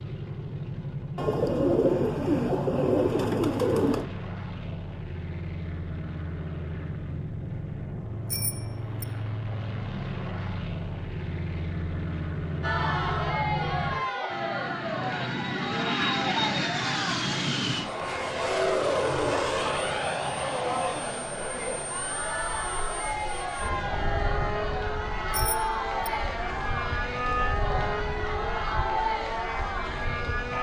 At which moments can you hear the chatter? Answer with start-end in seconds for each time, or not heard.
12.6-30.5.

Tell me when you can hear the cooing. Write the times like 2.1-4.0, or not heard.
1.1-4.0.